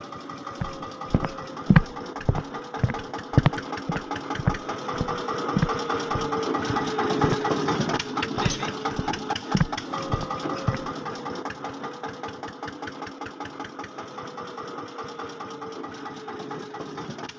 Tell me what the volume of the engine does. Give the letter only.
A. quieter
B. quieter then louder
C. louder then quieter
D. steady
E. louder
C.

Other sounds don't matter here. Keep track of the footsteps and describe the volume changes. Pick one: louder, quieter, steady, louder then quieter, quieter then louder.
quieter.